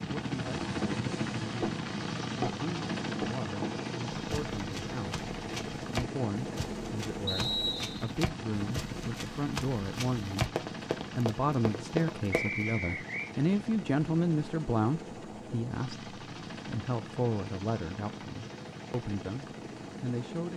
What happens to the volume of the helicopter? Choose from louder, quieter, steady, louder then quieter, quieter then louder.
quieter.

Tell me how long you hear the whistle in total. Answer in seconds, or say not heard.
2 s.